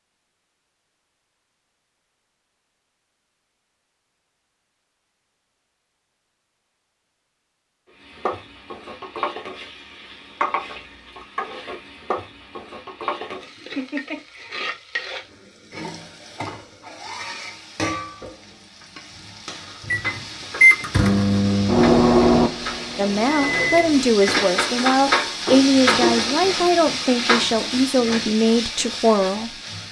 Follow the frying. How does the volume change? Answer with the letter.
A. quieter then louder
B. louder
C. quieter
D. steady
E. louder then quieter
B.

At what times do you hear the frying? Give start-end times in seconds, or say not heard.
8.0-29.8.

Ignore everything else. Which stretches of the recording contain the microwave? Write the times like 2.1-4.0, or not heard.
19.9-24.4.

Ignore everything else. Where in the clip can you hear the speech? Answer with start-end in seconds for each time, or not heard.
22.9-29.5.